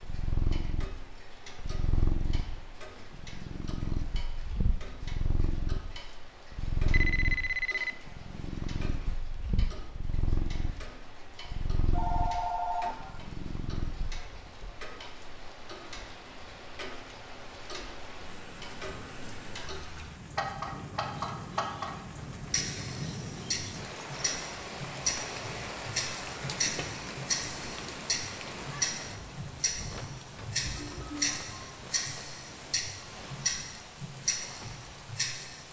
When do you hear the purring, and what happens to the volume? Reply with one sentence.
You can hear the purring from 0.0 to 14.2 s, at a steady volume.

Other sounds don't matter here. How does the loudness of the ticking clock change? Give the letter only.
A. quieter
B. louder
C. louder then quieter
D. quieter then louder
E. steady
B.